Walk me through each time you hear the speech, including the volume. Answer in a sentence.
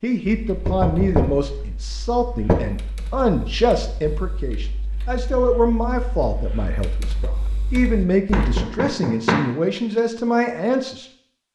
You can hear the speech from 0.0 to 11.1 s, at a steady volume.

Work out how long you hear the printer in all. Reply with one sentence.
You can't hear the printer here.